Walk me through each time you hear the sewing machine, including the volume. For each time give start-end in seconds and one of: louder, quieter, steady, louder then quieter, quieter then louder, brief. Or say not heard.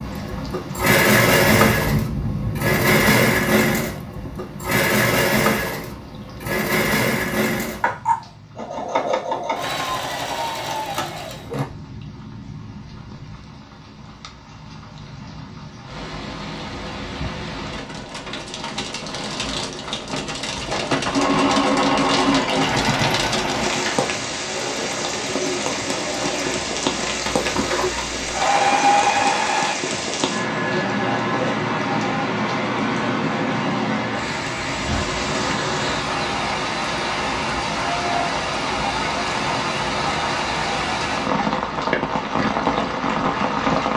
0.0-11.7 quieter
21.1-29.8 quieter then louder.